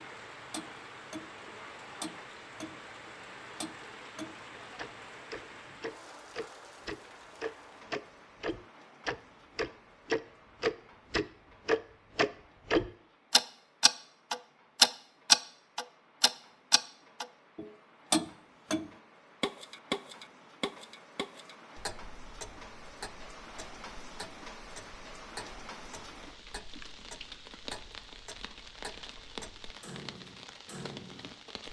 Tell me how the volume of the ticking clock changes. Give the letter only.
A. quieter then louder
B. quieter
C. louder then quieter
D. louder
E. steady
C.